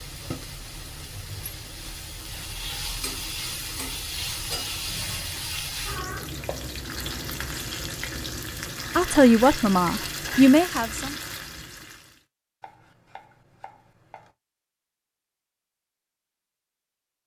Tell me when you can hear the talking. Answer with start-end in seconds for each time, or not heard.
8.9-11.2.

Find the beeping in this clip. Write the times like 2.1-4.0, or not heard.
not heard.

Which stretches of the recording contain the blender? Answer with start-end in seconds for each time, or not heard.
not heard.